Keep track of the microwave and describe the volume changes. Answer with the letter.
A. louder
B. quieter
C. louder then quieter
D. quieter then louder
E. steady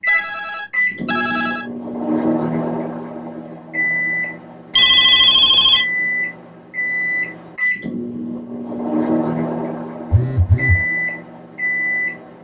E.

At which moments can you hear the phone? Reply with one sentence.
The phone can be heard from 0.1 to 1.7 s, from 4.8 to 5.8 s and from 10.1 to 10.8 s.